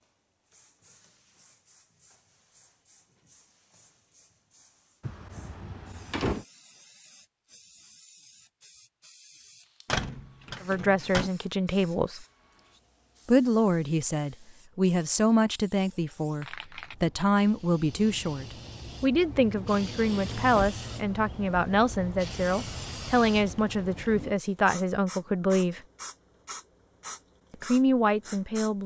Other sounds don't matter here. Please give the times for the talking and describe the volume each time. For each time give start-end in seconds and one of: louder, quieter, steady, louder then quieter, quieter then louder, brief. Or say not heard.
10.6-12.2 brief
13.2-25.8 steady
27.5-28.8 brief.